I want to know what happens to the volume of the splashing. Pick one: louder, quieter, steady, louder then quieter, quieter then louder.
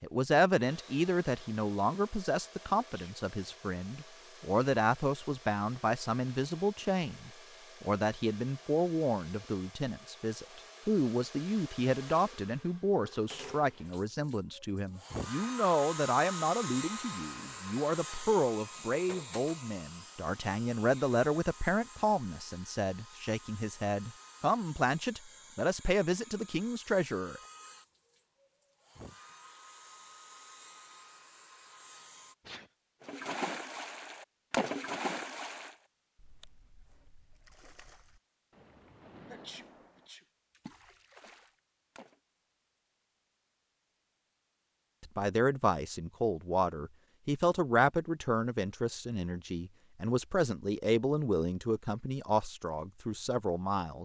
quieter then louder.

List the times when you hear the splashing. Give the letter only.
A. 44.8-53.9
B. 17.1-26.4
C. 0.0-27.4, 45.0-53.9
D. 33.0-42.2
D.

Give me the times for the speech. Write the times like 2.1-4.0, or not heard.
0.0-27.4, 45.0-53.9.